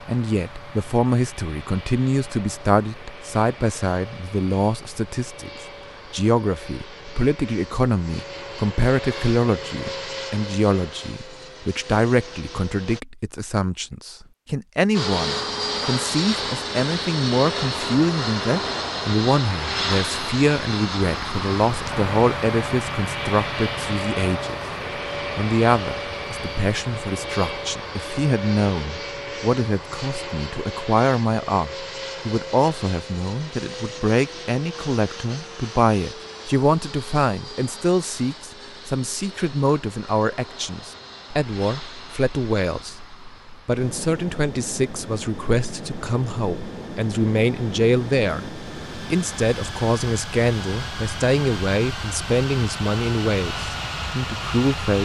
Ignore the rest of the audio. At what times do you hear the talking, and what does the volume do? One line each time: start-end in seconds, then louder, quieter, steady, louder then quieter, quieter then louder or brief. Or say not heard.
0.1-24.6 steady
25.4-55.0 steady.